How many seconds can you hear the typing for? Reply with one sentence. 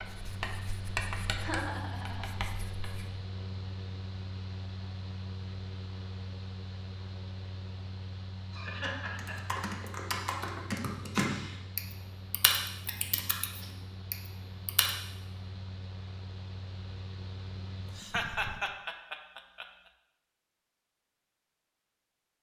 The typing can be heard for 6 seconds in total.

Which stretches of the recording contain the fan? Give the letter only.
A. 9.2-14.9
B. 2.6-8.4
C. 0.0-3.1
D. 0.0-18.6
D.